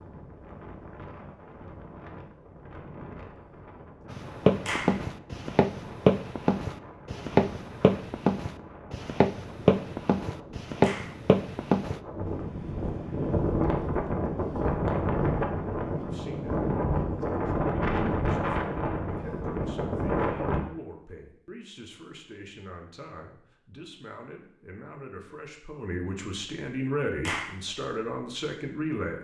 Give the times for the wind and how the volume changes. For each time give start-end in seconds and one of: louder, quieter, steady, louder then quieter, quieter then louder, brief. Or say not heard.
0.0-20.6 louder.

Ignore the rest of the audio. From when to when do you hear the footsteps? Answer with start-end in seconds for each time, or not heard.
4.1-12.0.